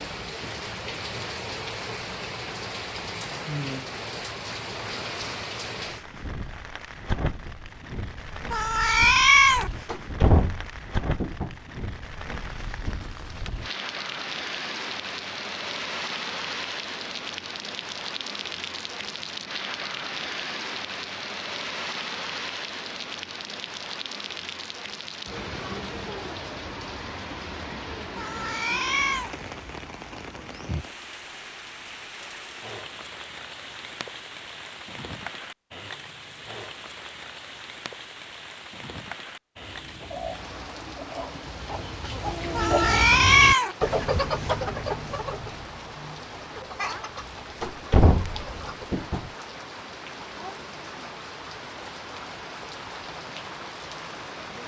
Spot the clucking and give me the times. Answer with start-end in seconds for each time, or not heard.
39.6-48.9.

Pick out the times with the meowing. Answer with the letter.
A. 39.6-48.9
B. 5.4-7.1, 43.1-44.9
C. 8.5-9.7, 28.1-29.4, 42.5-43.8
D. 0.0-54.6
C.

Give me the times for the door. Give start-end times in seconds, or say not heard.
9.8-11.6, 47.6-49.3.